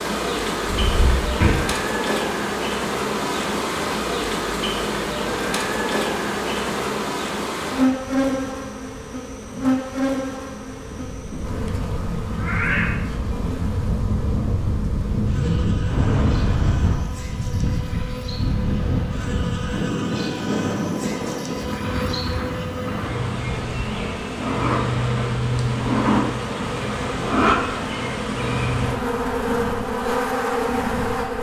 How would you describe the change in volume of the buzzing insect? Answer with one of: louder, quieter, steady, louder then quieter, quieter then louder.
quieter then louder.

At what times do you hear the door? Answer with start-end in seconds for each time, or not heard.
0.7-1.6.